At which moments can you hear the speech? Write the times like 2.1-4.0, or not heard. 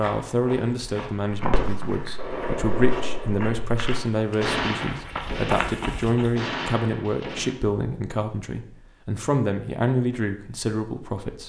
0.0-11.4.